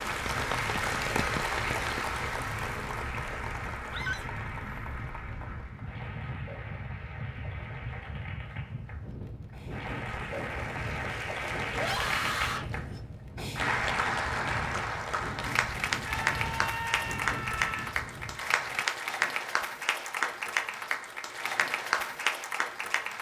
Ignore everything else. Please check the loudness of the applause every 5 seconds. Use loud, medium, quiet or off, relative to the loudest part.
loud, quiet, loud, loud, loud.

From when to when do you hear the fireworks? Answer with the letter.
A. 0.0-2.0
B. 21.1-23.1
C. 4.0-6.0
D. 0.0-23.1
A.